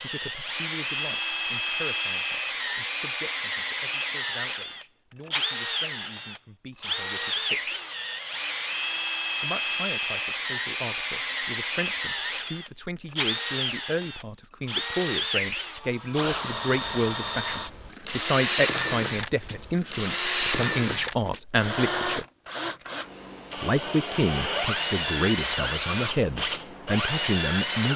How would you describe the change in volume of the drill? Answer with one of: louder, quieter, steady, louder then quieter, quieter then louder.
steady.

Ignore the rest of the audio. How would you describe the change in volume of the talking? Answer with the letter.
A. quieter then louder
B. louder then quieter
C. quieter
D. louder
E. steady
D.